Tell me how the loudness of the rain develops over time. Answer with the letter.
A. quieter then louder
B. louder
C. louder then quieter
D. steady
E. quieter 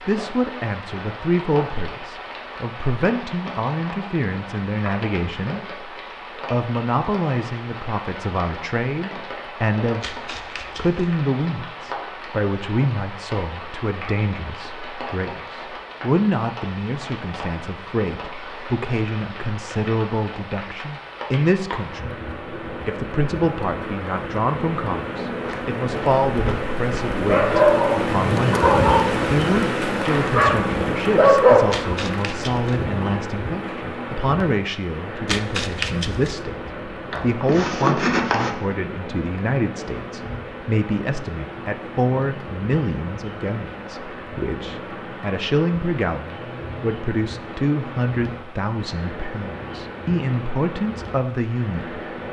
C.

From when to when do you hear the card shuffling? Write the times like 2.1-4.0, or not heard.
10.0-11.2, 31.7-32.9, 35.2-36.4.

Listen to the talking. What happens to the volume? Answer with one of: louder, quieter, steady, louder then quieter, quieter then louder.
steady.